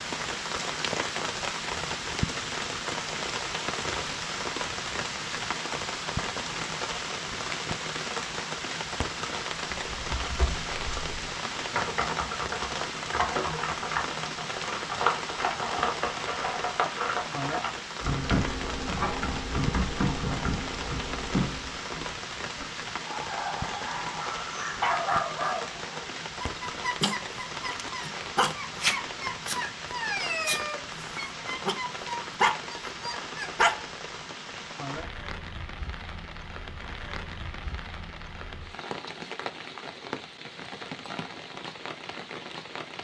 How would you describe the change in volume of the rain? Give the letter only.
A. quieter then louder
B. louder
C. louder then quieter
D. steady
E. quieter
E.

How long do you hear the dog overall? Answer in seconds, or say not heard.
11 s.